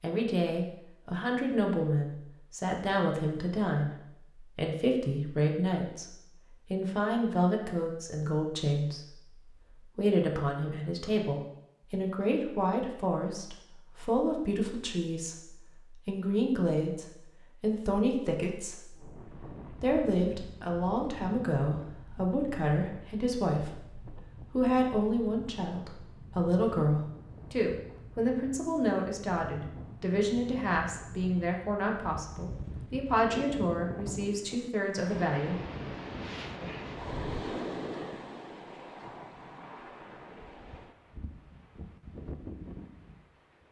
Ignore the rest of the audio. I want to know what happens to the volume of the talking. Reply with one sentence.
The volume of the talking stays about the same.